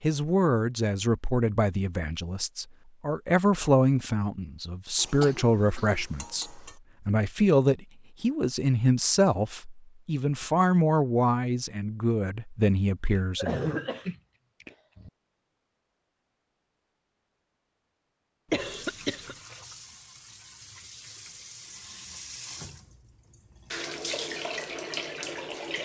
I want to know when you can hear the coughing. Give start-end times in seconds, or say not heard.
5.0-6.8, 13.1-15.1, 18.5-19.4.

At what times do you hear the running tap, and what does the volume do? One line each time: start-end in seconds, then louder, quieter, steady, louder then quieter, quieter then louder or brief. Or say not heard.
18.5-25.8 louder.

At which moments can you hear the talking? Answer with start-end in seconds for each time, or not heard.
0.0-13.8.